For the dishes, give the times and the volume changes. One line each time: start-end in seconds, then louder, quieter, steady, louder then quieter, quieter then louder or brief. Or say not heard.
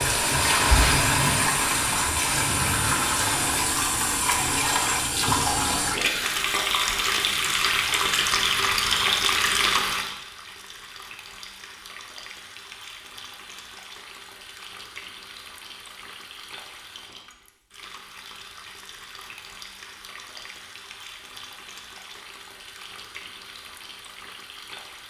not heard.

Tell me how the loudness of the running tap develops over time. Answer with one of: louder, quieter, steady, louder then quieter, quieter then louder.
quieter.